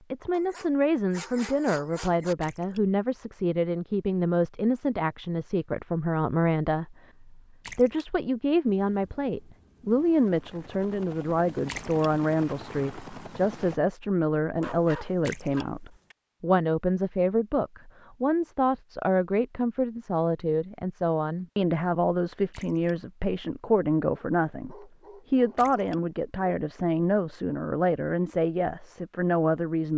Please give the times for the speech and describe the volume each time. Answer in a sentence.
The speech can be heard from 0.1 to 29.9 s, at a steady volume.